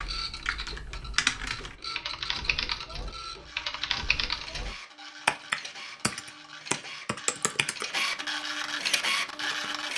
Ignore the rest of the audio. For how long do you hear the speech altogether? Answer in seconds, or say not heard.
not heard.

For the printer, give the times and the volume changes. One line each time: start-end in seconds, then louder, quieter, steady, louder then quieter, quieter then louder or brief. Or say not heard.
0.0-9.9 louder.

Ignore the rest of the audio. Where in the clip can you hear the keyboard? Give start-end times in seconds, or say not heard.
0.0-9.8.